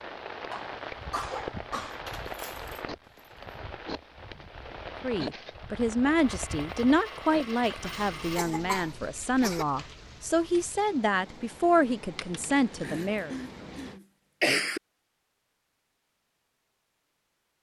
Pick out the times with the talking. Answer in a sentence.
The talking can be heard from 5.0 to 13.3 s.